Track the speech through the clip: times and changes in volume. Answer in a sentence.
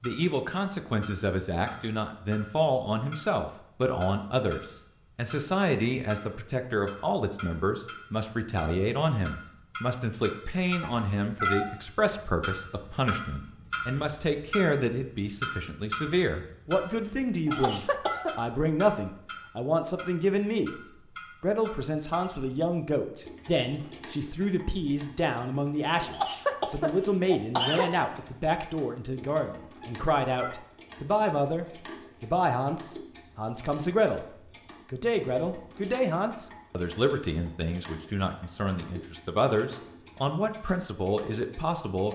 The speech can be heard from 0.0 to 20.8 s, at a steady volume; and from 21.4 to 42.0 s, at a steady volume.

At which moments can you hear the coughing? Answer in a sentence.
You can hear the coughing from 17.4 to 18.3 s and from 26.1 to 27.9 s.